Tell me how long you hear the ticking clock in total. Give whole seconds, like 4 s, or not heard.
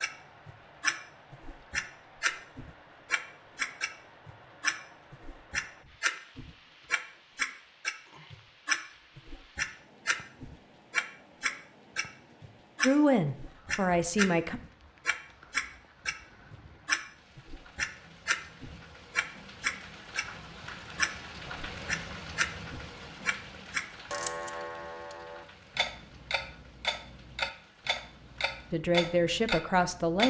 30 s.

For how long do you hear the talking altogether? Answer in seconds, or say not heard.
3 s.